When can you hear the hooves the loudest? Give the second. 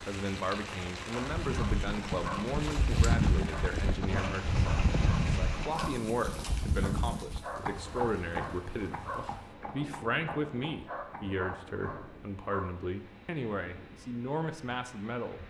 3 s.